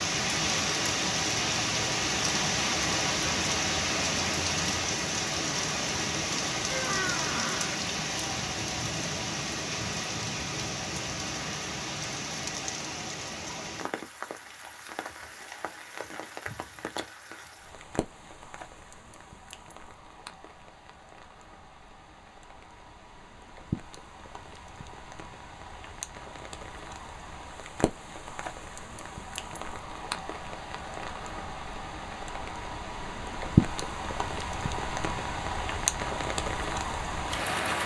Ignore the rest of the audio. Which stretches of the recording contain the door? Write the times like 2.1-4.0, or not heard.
6.7-7.8.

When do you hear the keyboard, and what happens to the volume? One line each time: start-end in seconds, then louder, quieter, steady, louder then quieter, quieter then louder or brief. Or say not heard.
not heard.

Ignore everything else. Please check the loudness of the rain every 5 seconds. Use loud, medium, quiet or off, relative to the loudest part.
loud, loud, medium, quiet, quiet, quiet, loud, loud.